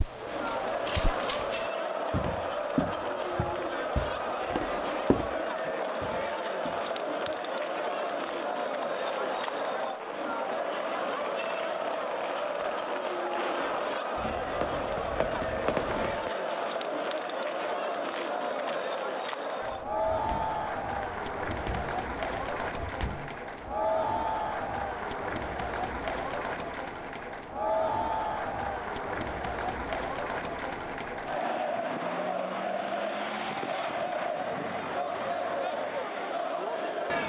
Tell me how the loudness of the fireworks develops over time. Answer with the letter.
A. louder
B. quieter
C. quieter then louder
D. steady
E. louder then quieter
A.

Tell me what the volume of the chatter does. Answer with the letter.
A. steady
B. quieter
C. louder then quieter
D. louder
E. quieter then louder
A.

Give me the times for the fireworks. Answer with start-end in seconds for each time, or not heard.
7.3-16.3.